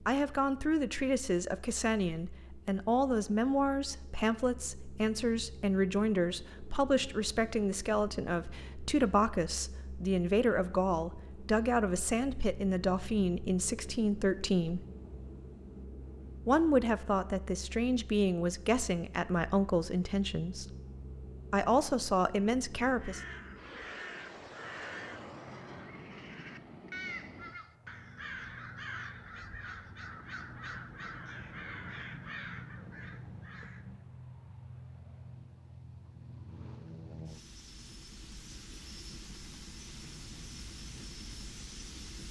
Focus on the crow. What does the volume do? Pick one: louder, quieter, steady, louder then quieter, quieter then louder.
steady.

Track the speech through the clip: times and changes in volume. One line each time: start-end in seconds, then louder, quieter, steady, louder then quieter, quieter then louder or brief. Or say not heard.
0.1-14.8 steady
16.4-20.6 steady
21.5-23.2 brief.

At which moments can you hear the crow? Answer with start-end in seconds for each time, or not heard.
23.0-34.0.